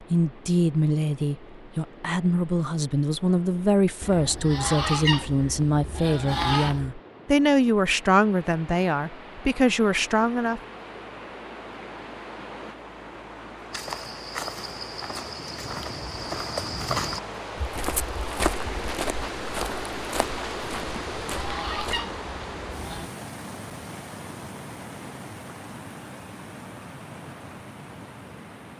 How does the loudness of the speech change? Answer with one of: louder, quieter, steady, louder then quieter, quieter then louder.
steady.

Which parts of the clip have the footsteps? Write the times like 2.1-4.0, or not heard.
13.7-22.0.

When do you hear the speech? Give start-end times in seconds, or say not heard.
0.1-10.6.